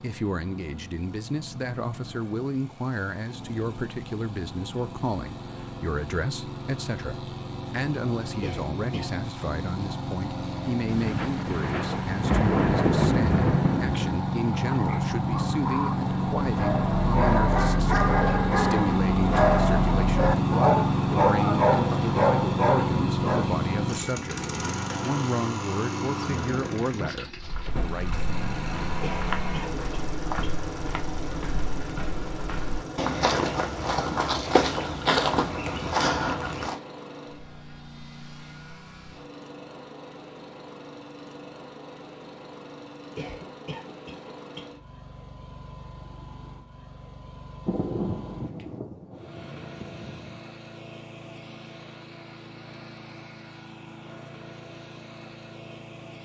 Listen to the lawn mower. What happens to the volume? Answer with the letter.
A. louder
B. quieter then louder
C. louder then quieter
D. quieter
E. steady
C.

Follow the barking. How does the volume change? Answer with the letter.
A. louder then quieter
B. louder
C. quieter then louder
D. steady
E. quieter
B.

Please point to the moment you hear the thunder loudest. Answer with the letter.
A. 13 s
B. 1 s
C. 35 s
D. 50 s
A.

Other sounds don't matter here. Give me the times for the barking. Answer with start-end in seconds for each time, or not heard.
14.6-23.5.